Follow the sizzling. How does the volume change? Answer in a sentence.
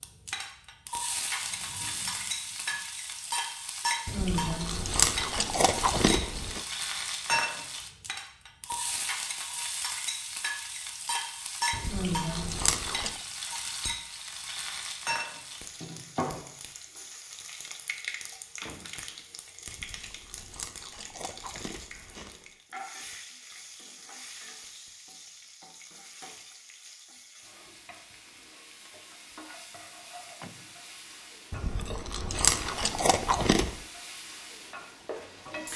The volume of the sizzling goes down.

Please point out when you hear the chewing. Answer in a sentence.
The chewing can be heard from 4.0 to 6.6 s, from 11.7 to 13.2 s, from 19.6 to 22.5 s and from 31.5 to 33.8 s.